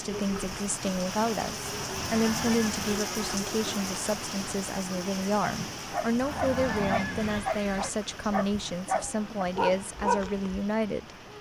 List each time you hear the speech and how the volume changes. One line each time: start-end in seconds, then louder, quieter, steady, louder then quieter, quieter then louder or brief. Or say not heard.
0.0-11.1 steady.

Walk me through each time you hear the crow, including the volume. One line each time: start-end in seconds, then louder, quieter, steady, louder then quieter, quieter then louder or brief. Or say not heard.
not heard.